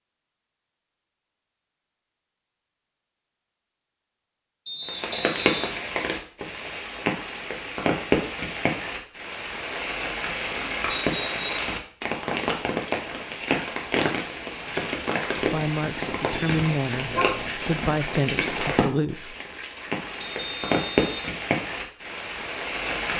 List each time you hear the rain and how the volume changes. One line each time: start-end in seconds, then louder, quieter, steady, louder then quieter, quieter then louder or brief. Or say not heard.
4.8-23.1 steady.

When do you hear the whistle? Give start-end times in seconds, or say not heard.
4.7-5.8, 10.8-11.8, 20.2-21.3.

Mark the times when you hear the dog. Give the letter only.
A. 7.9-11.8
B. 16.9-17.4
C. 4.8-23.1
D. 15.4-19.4
B.